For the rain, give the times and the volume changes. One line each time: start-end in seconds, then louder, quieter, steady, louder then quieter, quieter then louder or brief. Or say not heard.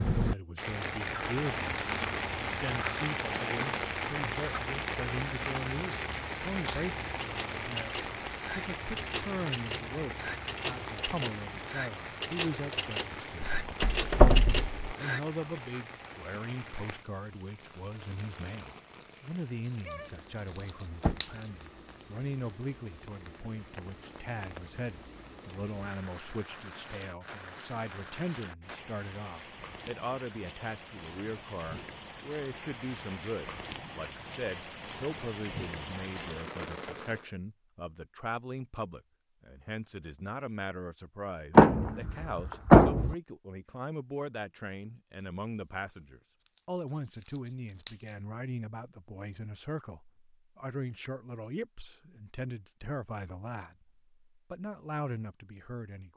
0.0-37.3 quieter then louder.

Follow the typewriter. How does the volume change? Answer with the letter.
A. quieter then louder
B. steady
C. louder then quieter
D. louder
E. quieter
D.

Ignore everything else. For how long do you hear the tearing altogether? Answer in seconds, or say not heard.
5 s.